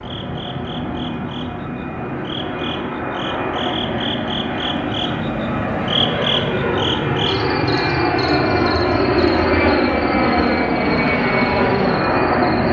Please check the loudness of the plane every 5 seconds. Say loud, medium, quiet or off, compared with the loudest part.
medium, loud, loud.